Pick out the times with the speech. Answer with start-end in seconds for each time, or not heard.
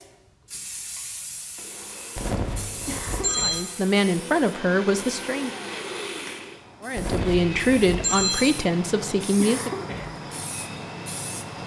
3.4-5.5, 6.8-9.8.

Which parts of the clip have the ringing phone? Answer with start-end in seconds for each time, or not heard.
2.1-3.6, 7.0-8.5.